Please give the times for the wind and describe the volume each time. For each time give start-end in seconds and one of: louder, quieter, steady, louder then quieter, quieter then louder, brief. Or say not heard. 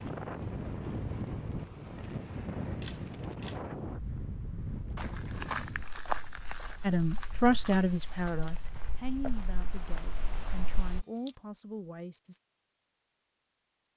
0.0-11.1 quieter then louder.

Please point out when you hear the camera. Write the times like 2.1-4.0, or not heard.
2.8-3.6, 10.8-11.3.